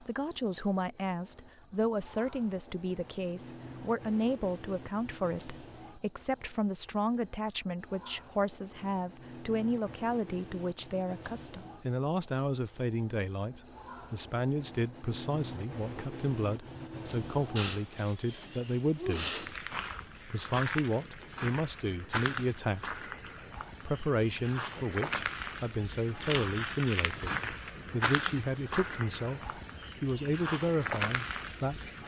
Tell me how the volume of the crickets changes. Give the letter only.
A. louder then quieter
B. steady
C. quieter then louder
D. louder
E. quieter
D.